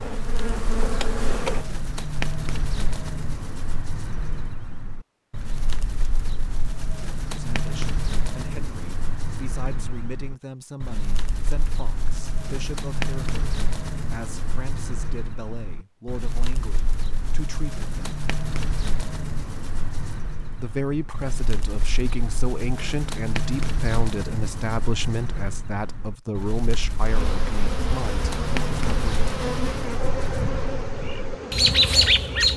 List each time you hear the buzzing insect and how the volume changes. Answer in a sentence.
You can hear the buzzing insect briefly from 0.0 to 1.6 s; and from 27.0 to 32.5 s, at a steady volume.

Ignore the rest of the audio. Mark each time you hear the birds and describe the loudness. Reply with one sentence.
You can hear the birds from 0.0 to 32.5 s, getting louder.